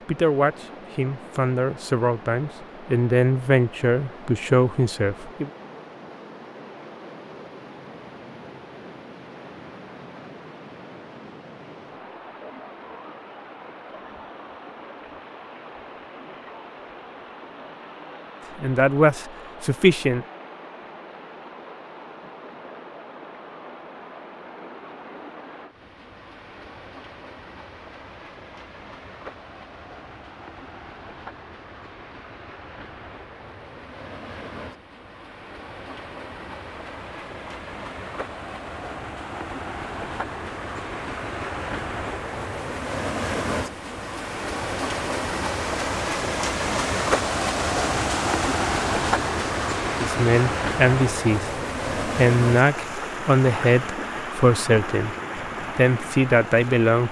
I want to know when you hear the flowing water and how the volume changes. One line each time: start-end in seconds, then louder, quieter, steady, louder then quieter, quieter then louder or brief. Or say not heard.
0.0-57.0 louder.